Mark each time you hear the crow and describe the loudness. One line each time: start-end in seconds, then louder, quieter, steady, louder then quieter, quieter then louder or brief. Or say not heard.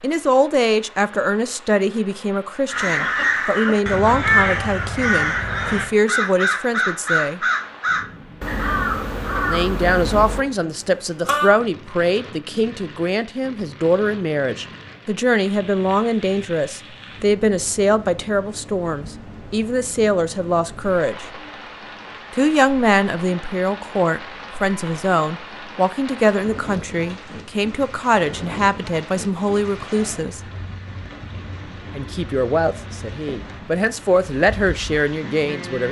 2.6-11.6 quieter.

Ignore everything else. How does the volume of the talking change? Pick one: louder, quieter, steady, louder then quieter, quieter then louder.
steady.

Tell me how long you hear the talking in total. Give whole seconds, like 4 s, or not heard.
31 s.